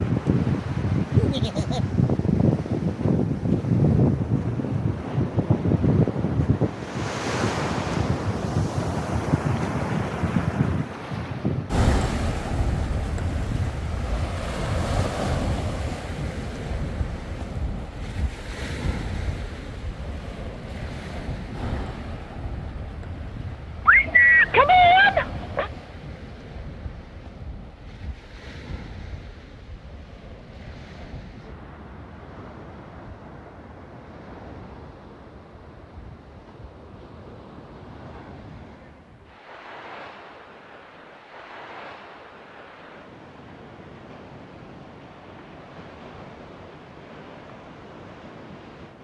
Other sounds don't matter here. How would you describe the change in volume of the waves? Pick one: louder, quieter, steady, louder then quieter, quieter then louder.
quieter.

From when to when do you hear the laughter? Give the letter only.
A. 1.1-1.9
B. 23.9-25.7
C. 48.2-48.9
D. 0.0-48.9
A.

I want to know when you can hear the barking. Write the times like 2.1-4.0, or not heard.
23.9-25.7.